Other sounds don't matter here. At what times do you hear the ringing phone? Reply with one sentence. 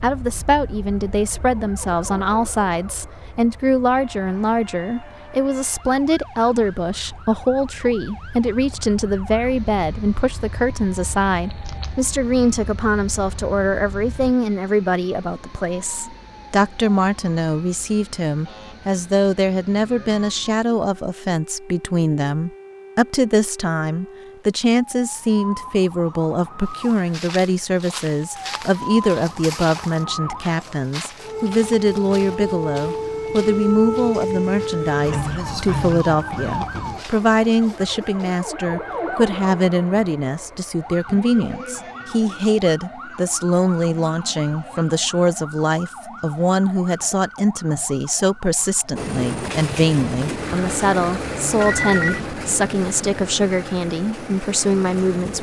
The ringing phone can be heard from 51.6 to 52.2 s.